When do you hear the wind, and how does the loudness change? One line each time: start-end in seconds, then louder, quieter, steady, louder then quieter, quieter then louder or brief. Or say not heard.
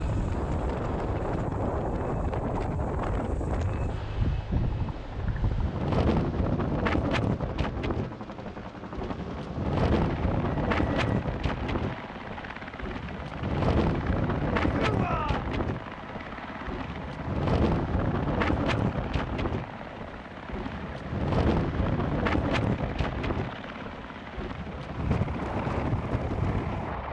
0.0-27.0 steady.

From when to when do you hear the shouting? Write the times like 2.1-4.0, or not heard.
14.7-15.4.